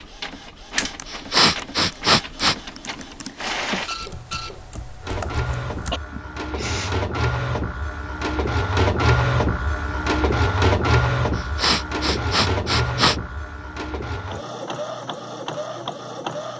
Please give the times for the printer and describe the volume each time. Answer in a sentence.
The printer can be heard from 0.0 to 16.5 s, getting louder then quieter.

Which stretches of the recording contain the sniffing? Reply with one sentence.
The sniffing can be heard from 1.1 to 2.5 s, from 5.9 to 7.0 s and from 11.3 to 13.2 s.